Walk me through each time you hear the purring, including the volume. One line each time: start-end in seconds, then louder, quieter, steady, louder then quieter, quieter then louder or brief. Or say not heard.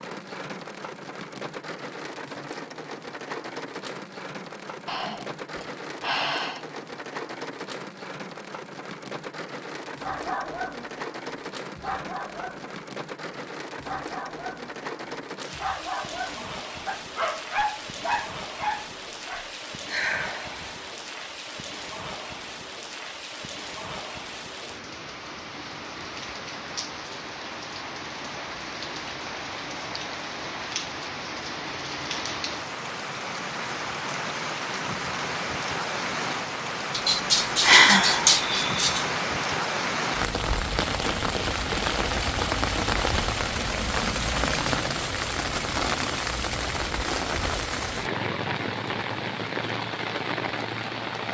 not heard.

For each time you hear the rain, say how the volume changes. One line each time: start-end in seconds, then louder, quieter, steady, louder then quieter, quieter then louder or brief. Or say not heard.
0.0-51.2 louder.